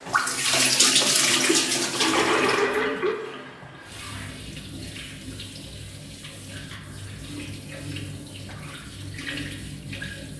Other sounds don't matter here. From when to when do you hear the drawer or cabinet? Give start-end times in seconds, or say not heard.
not heard.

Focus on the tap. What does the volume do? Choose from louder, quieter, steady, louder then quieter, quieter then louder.
quieter.